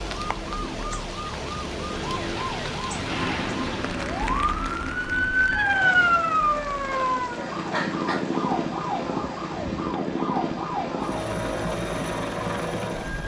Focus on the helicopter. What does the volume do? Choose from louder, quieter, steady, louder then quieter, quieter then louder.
quieter then louder.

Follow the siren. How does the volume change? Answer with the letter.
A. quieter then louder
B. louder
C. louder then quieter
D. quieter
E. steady
C.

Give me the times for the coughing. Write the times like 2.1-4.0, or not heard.
7.7-8.3.